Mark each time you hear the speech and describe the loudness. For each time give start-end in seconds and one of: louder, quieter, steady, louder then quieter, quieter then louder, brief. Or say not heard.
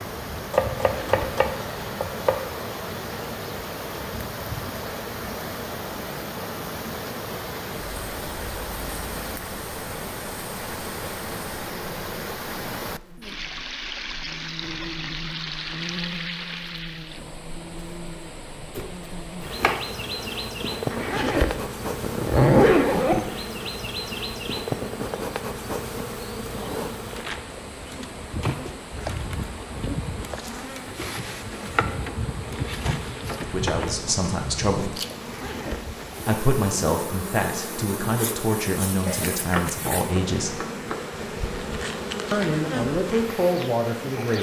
33.4-35.0 brief
36.2-40.6 steady
42.3-44.3 brief.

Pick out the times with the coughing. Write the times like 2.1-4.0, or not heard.
not heard.